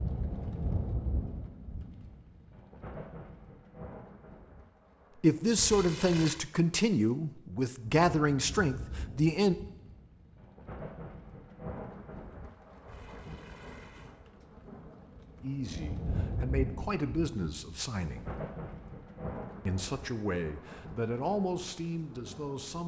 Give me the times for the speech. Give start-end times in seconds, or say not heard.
5.2-9.6, 15.4-18.3, 19.6-22.8.